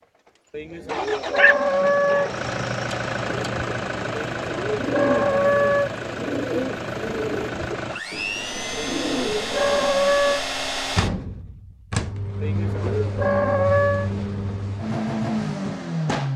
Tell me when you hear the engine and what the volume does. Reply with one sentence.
The engine can be heard from 0.0 to 16.3 s, at a steady volume.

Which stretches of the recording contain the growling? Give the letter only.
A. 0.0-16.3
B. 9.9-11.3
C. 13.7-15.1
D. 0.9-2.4
D.